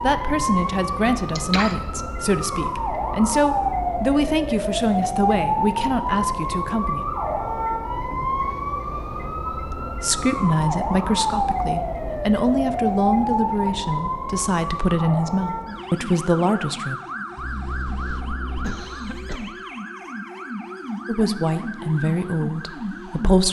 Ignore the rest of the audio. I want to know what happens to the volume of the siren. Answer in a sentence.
The volume of the siren goes down.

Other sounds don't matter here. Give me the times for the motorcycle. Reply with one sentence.
The motorcycle can't be heard in this clip.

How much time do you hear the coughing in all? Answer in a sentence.
You can hear the coughing for 3 seconds altogether.